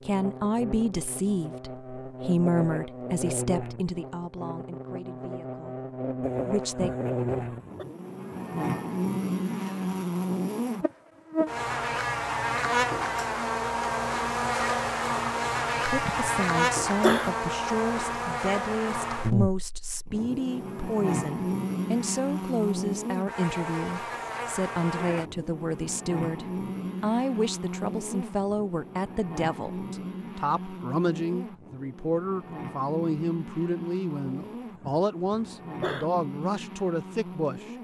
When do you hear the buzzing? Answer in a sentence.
You can hear the buzzing from 0.0 to 37.7 s.